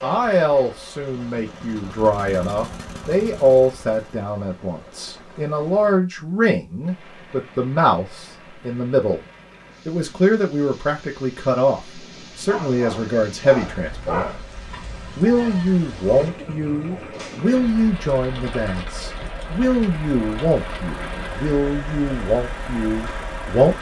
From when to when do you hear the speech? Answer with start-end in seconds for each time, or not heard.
0.0-9.2, 9.8-14.2, 15.2-23.7.